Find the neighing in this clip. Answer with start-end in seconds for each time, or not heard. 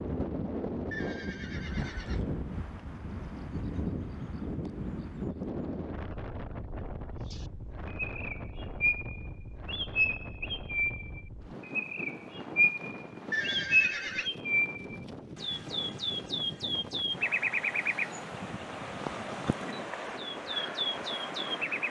0.9-2.4, 13.3-14.3.